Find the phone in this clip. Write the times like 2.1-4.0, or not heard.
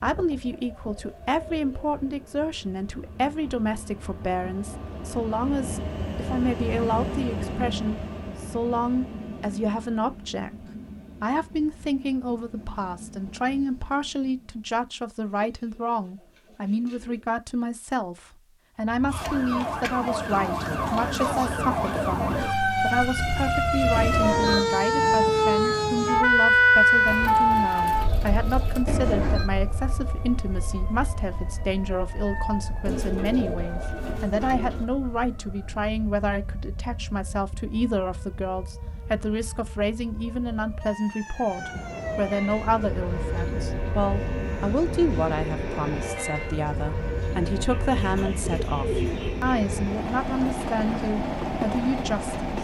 23.9-24.6, 28.9-29.5.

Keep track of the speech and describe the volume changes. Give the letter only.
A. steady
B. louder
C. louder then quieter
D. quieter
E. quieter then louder
A.